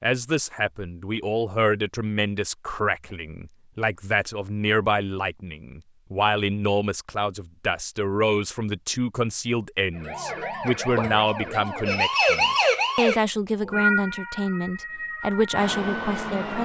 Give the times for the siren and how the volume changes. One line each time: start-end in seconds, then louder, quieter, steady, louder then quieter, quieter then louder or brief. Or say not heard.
9.9-16.5 louder then quieter.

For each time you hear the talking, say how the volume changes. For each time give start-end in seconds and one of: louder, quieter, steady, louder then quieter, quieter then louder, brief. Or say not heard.
0.0-16.5 steady.